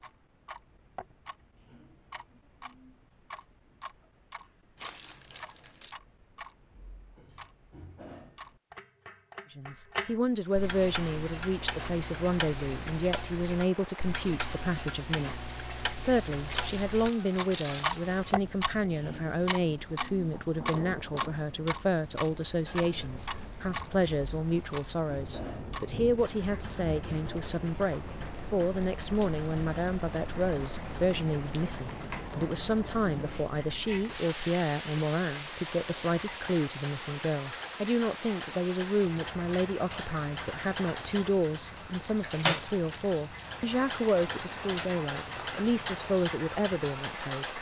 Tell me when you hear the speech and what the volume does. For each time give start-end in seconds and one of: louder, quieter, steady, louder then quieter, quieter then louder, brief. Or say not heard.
9.6-47.5 steady.